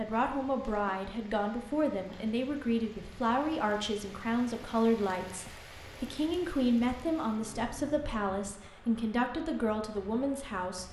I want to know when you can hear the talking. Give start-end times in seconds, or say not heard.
0.0-10.8.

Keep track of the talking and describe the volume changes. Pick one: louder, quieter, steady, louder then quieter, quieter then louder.
steady.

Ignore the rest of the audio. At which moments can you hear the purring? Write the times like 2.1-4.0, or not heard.
not heard.